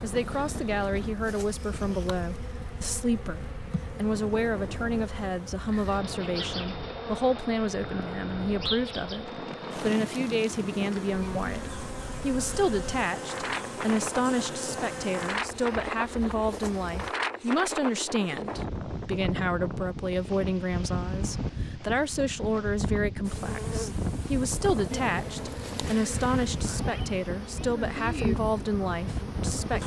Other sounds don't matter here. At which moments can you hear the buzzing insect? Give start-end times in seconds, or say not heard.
0.0-17.1, 23.2-29.8.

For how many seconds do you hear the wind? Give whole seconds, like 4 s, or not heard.
30 s.